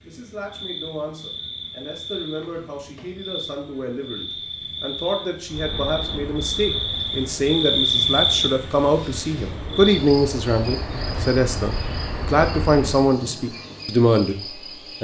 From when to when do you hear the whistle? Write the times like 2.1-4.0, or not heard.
not heard.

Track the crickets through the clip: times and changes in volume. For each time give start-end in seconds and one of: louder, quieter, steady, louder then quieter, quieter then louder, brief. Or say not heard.
0.0-14.9 louder then quieter.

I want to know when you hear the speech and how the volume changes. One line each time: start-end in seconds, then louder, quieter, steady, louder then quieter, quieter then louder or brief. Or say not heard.
0.0-14.9 louder.